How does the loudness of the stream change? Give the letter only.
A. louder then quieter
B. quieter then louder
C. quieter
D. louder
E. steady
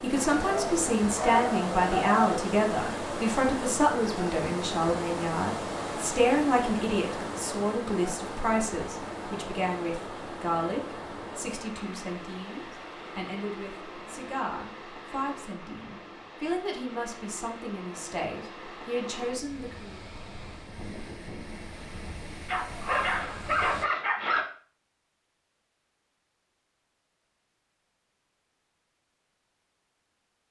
C.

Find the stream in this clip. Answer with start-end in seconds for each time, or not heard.
0.0-23.9.